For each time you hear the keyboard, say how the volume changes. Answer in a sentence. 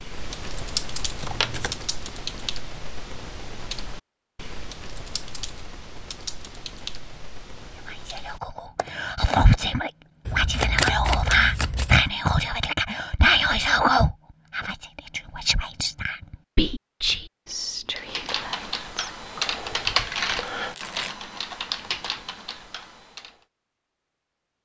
The keyboard can be heard from 0.0 to 9.7 s, getting quieter; and from 17.9 to 23.4 s, getting louder then quieter.